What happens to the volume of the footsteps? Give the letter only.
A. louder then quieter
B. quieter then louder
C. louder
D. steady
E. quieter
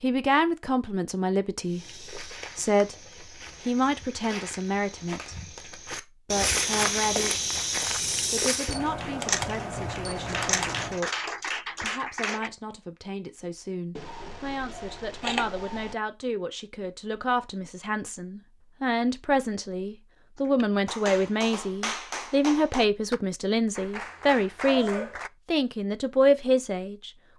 C.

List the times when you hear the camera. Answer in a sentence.
You can hear the camera from 8.7 to 11.0 s and from 13.9 to 15.9 s.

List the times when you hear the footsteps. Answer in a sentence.
The footsteps can be heard from 1.6 to 8.8 s.